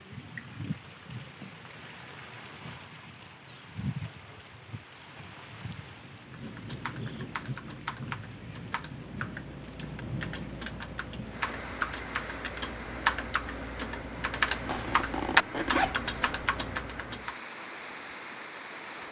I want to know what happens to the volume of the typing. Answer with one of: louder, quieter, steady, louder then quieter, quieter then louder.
louder.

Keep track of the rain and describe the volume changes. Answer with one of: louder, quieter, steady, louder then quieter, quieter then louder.
steady.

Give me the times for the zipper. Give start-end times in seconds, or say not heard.
14.7-16.4.